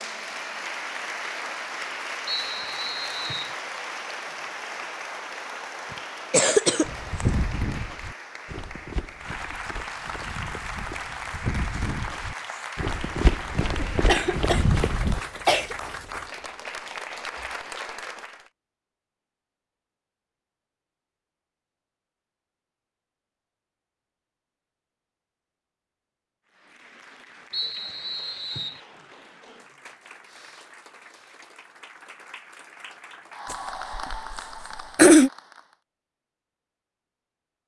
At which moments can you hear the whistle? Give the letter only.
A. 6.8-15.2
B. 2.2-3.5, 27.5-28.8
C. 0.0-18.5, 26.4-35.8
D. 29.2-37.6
B.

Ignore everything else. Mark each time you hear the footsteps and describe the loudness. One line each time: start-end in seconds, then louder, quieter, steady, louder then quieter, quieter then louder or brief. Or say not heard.
6.8-15.2 quieter then louder.